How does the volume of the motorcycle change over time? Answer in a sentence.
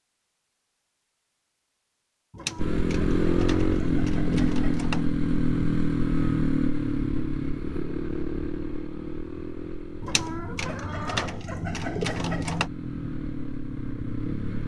The volume of the motorcycle goes down, then up.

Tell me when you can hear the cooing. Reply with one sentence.
The cooing can be heard from 2.3 to 5.2 s and from 10.0 to 12.7 s.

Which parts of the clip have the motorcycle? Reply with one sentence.
You can hear the motorcycle from 2.5 to 14.6 s.